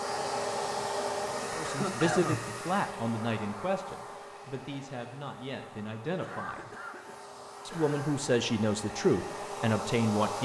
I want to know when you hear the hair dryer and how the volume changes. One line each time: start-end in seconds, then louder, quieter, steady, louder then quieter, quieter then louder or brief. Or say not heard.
0.0-10.4 quieter then louder.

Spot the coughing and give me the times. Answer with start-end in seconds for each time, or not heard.
1.6-2.5, 6.2-8.2.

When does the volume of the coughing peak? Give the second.
2 s.